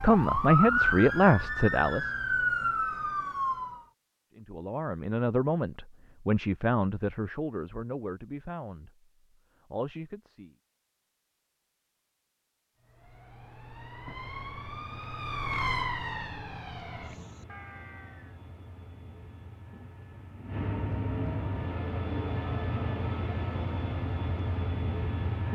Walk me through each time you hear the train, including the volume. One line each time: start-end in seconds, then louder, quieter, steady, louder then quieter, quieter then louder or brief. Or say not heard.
14.2-25.4 louder.